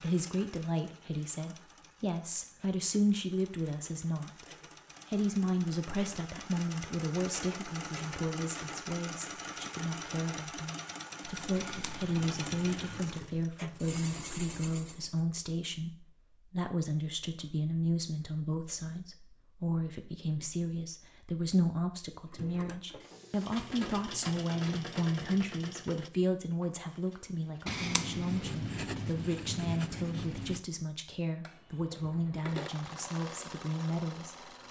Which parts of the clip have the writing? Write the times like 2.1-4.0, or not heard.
11.6-13.1, 27.6-30.6.